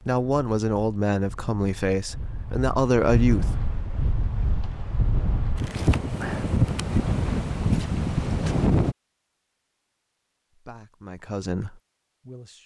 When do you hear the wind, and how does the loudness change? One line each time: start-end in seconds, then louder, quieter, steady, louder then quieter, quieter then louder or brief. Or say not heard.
0.0-8.9 louder.